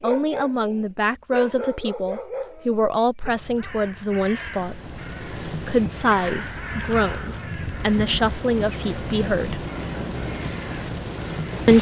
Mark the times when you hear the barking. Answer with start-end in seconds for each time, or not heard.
0.0-3.3.